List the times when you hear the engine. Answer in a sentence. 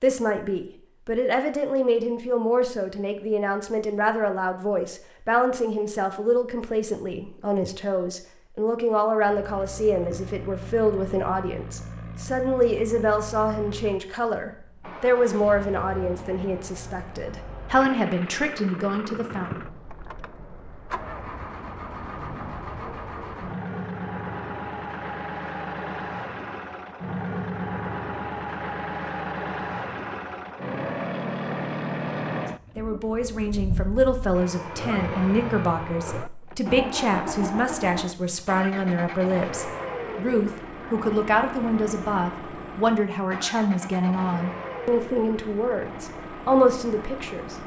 The engine can be heard from 9.2 to 47.6 s.